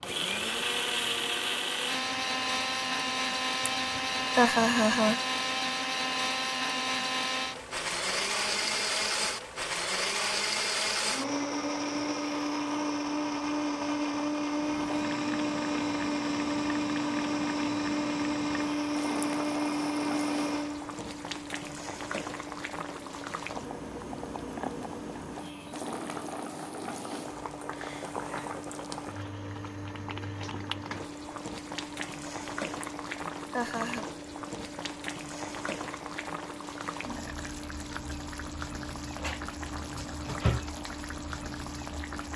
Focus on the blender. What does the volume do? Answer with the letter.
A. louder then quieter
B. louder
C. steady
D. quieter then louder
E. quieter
E.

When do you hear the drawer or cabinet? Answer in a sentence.
The drawer or cabinet can be heard from 39.1 to 40.7 s.